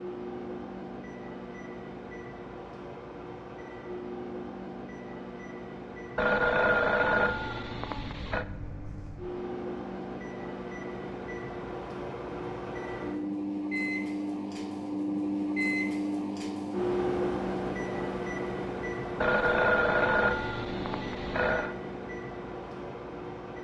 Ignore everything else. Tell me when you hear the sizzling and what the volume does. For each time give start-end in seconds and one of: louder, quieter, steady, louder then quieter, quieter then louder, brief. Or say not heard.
not heard.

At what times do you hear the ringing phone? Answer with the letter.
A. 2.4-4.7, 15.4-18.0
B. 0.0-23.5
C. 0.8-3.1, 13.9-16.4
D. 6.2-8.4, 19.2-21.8
D.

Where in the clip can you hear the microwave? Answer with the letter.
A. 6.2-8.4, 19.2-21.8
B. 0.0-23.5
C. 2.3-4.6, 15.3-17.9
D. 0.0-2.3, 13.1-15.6
B.